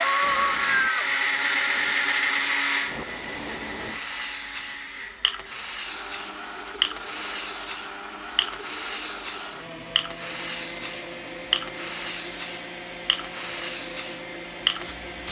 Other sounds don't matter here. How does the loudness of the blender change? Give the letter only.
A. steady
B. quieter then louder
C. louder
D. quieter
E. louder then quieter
D.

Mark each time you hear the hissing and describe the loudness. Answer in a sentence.
The hissing can be heard from 0.0 to 15.2 s, getting louder.